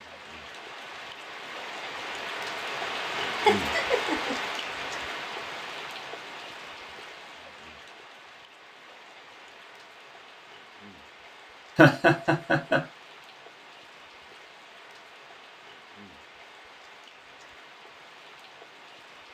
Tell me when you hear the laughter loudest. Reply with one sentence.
The loudest moment of the laughter is at 12 seconds.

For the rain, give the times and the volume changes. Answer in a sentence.
You can hear the rain from 0.0 to 19.2 s, getting quieter.